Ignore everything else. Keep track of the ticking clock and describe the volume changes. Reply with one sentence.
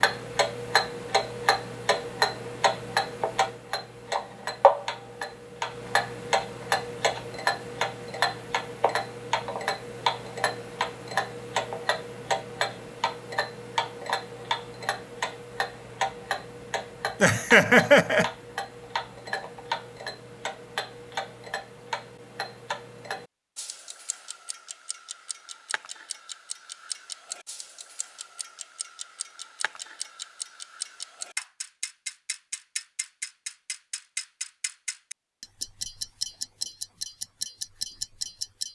The volume of the ticking clock goes down, then up.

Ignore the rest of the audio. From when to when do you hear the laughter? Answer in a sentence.
You can hear the laughter from 17.2 to 18.2 s.